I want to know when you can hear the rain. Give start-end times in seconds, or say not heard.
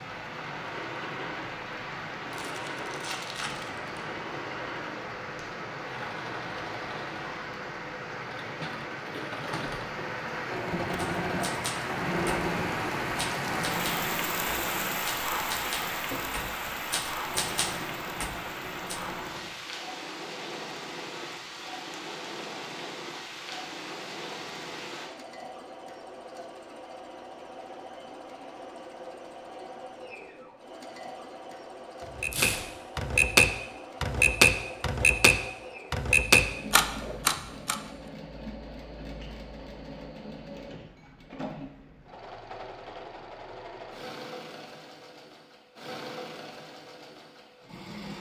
0.0-25.1.